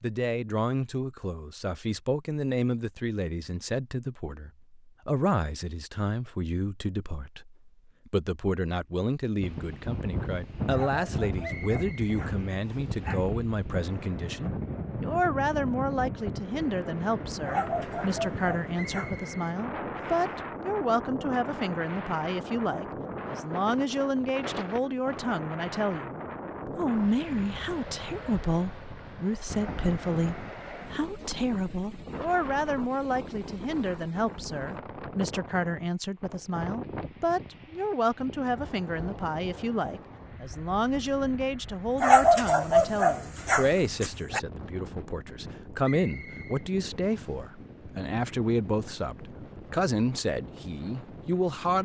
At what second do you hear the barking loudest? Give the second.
42 s.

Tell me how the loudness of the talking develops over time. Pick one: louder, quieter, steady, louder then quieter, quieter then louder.
steady.